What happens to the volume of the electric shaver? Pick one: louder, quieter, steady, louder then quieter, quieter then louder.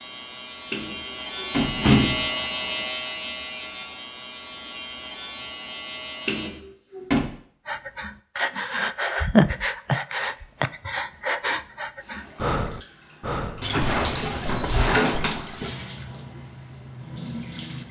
louder then quieter.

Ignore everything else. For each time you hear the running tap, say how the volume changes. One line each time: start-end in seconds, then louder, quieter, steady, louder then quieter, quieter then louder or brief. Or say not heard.
11.9-17.8 louder then quieter.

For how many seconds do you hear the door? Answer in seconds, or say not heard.
4 s.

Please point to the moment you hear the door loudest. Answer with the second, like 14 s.
2 s.